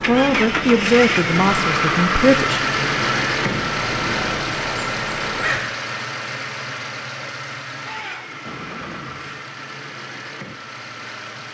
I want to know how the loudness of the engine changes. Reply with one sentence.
The loudness of the engine goes down.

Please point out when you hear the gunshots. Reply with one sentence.
The gunshots can be heard from 7.8 to 9.3 s.